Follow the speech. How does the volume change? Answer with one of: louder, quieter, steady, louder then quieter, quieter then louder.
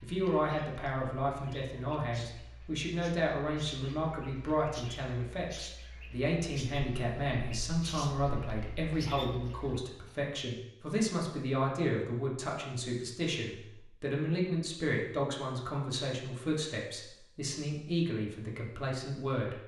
steady.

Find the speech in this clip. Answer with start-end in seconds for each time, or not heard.
0.0-19.6.